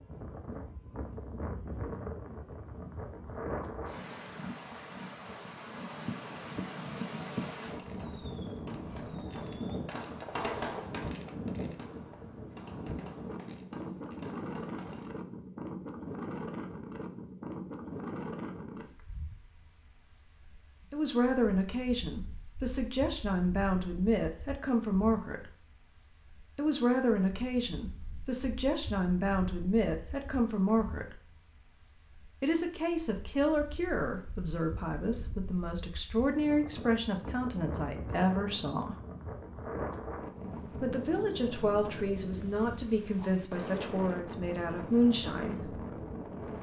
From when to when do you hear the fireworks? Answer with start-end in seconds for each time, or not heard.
7.6-15.1.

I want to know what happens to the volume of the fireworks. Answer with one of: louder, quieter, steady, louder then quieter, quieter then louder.
louder then quieter.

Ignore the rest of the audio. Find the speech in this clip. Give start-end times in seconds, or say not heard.
20.9-25.5, 26.6-31.2, 32.4-39.0, 40.8-45.6.